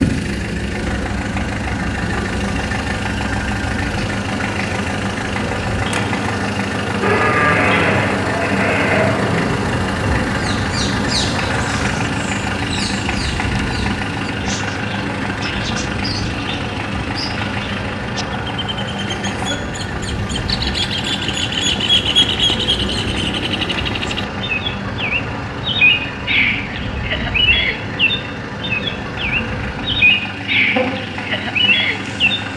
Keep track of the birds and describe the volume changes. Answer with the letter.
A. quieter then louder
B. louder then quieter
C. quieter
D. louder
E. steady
D.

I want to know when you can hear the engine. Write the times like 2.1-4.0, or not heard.
0.0-32.5.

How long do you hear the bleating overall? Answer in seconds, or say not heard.
2 s.